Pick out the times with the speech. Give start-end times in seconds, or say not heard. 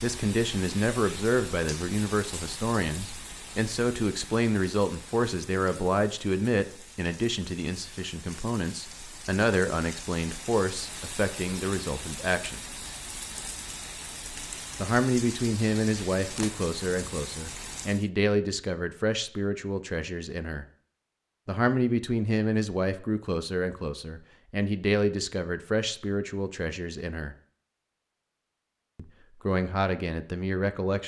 0.0-12.6, 14.8-20.6, 21.4-27.4, 28.9-31.0.